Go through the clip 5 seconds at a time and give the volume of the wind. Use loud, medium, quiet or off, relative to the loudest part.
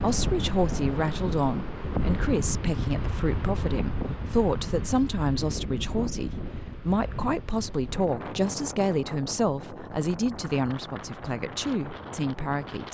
loud, medium, medium.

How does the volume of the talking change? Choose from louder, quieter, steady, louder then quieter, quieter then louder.
steady.